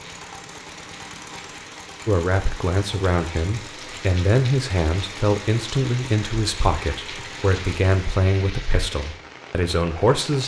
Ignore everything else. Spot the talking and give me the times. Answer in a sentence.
The talking can be heard from 2.0 to 10.4 s.